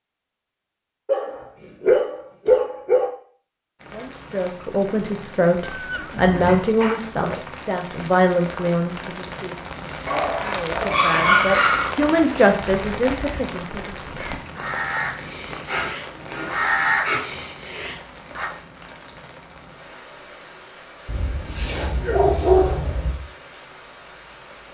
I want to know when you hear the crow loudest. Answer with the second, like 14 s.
17 s.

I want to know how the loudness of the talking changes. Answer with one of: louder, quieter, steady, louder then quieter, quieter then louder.
steady.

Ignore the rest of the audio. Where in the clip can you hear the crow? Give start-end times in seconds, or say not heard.
12.6-18.5.